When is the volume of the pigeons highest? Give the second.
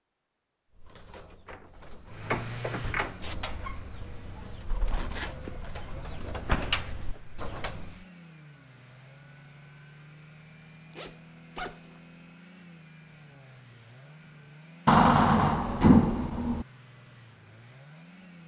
7 s.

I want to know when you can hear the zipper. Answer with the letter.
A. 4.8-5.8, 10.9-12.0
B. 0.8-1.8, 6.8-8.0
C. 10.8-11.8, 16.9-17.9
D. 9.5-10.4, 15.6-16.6
A.